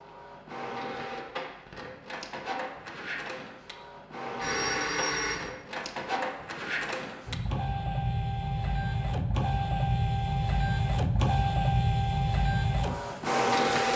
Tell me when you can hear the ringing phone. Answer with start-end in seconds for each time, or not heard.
4.4-5.5.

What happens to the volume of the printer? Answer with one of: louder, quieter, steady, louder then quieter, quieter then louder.
louder.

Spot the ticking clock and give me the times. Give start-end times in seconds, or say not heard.
not heard.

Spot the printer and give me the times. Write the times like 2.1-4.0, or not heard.
0.0-13.9.